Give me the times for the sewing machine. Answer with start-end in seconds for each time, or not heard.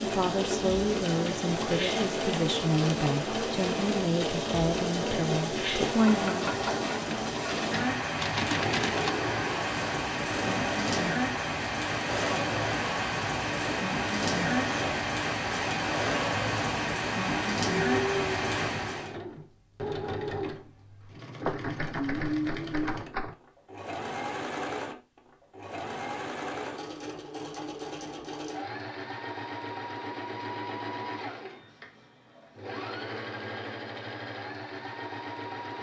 0.0-35.7.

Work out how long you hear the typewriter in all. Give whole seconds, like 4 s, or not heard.
4 s.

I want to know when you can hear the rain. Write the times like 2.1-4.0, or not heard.
0.0-19.1.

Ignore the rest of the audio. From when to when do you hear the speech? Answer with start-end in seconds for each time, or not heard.
0.0-6.5.